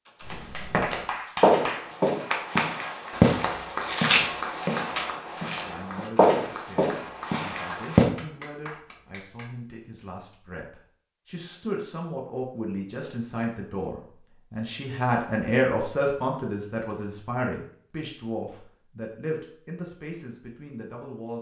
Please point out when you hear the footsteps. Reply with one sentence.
The footsteps can be heard from 0.2 to 8.1 s.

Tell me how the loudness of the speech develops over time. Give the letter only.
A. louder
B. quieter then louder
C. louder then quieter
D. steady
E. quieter
C.